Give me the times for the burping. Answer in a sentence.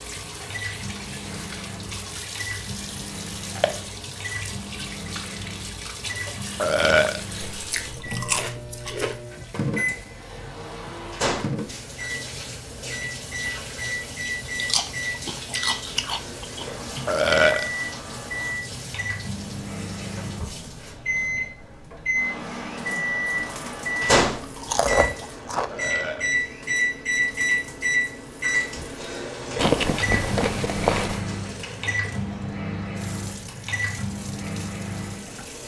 The burping can be heard from 6.6 to 7.2 s, from 17.1 to 17.7 s and from 25.7 to 26.4 s.